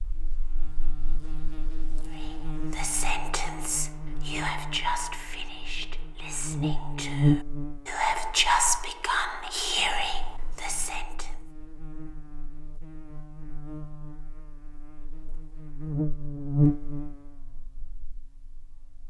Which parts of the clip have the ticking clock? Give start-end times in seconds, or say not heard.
not heard.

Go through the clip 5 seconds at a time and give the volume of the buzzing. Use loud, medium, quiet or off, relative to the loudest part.
medium, loud, quiet, loud.